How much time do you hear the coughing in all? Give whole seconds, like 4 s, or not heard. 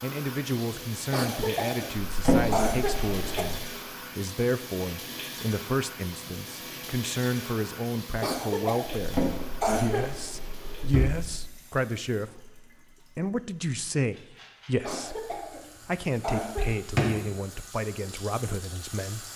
6 s.